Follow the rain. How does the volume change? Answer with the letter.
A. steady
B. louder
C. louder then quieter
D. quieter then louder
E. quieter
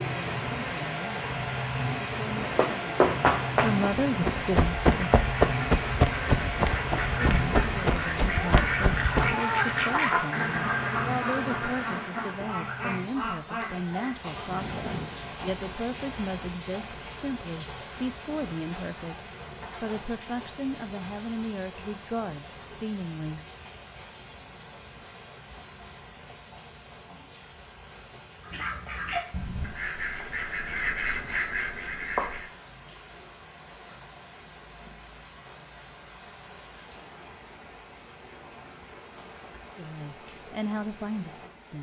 E.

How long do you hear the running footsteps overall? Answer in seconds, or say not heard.
7 s.